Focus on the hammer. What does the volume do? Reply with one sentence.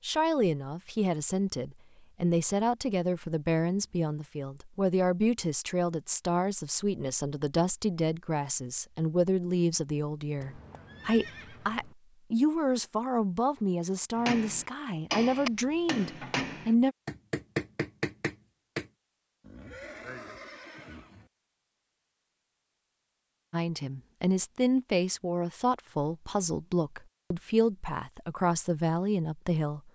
The volume of the hammer stays about the same.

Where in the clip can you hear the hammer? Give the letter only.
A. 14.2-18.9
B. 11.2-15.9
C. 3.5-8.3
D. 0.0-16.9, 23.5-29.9
A.